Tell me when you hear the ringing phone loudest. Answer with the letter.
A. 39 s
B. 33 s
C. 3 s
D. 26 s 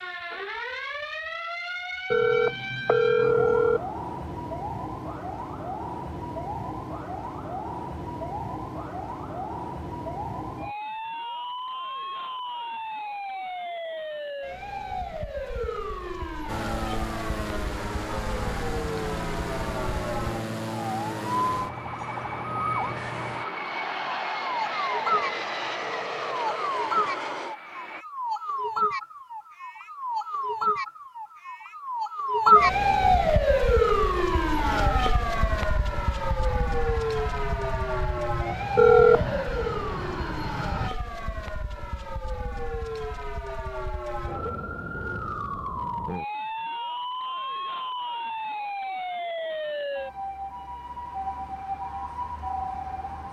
A.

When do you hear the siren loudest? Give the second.
33 s.